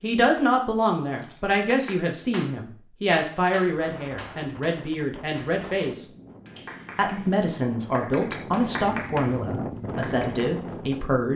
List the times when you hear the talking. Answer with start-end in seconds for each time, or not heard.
0.0-6.0, 7.0-11.3.